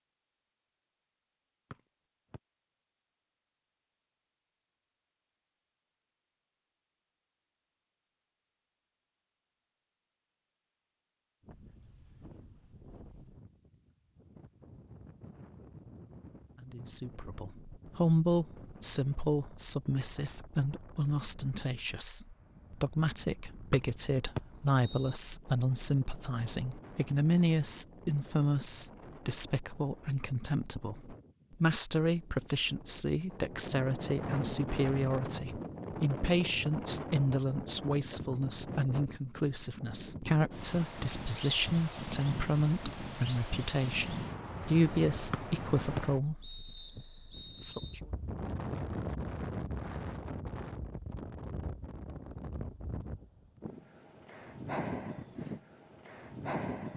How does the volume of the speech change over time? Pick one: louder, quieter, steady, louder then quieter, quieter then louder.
steady.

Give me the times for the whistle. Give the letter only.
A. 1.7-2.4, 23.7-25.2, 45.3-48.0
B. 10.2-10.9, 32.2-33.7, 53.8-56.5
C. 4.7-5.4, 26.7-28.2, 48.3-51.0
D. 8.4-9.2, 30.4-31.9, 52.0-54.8
A.